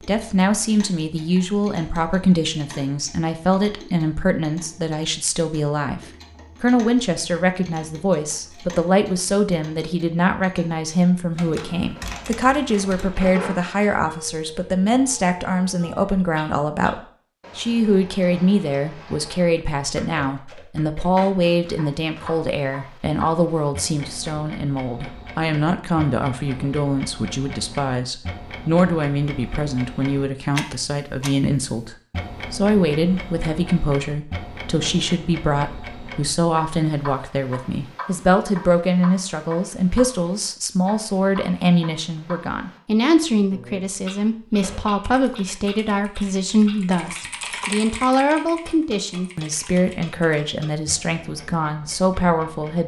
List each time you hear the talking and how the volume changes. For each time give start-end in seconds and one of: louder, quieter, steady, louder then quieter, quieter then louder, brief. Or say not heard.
0.0-52.8 steady.